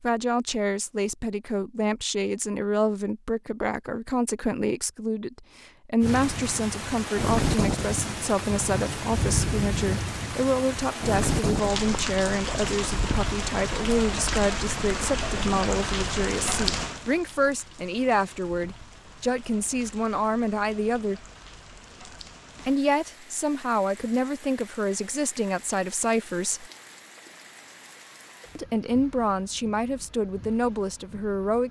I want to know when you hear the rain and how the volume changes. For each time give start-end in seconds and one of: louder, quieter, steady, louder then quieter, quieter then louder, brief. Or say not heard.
6.0-31.6 quieter.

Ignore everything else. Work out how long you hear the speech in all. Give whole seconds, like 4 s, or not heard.
28 s.